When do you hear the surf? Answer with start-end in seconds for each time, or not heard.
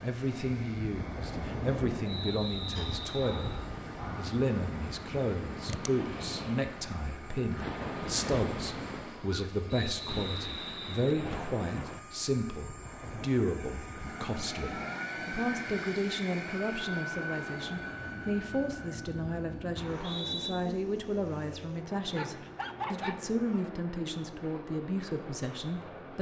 0.0-13.3.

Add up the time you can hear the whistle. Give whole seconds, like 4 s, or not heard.
4 s.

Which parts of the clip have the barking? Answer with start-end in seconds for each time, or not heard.
2.8-4.4, 22.1-23.6.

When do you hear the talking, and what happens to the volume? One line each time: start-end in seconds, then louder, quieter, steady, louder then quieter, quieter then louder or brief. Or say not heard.
0.0-26.1 steady.